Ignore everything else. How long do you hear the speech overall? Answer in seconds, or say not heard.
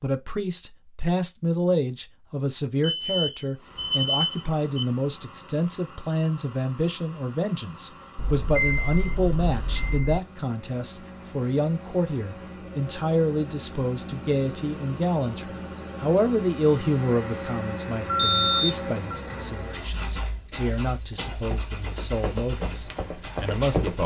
24 s.